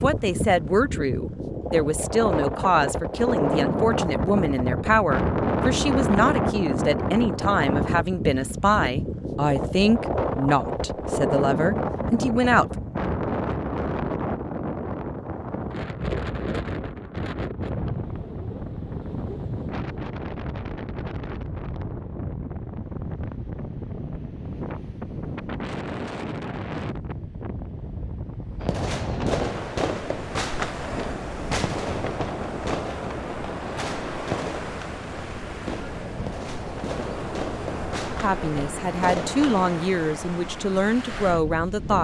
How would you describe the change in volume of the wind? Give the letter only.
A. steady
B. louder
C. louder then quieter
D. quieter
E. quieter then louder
D.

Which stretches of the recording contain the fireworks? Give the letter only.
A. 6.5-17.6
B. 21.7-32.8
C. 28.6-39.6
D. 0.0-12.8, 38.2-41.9
C.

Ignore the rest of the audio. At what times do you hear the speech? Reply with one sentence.
You can hear the speech from 0.0 to 12.8 s and from 38.2 to 41.9 s.